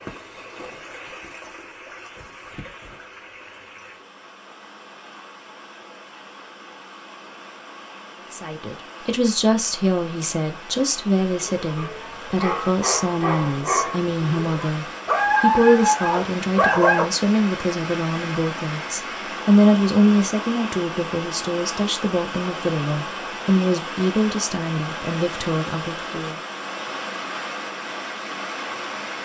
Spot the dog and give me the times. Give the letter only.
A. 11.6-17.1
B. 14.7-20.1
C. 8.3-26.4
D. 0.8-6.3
A.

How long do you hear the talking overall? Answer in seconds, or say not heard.
18 s.